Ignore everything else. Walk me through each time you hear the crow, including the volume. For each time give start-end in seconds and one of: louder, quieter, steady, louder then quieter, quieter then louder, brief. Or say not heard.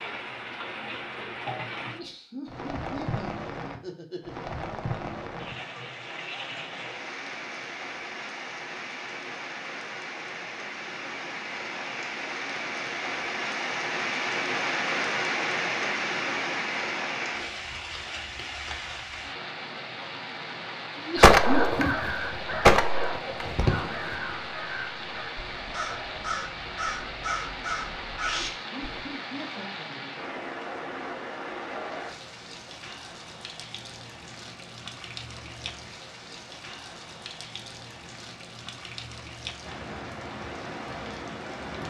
21.1-29.1 quieter then louder.